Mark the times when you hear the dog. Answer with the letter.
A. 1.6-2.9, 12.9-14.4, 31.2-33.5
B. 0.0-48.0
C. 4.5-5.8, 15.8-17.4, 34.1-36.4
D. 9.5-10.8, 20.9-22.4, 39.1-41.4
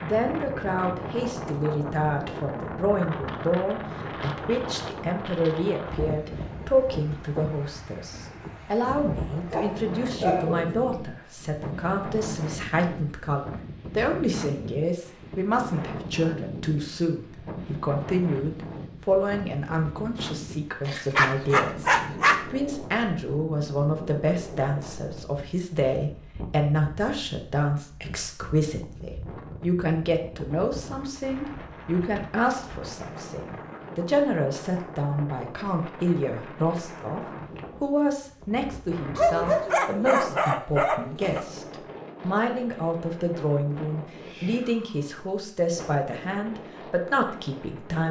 D.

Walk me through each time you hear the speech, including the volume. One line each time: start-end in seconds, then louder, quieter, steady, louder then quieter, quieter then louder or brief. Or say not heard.
0.0-48.0 steady.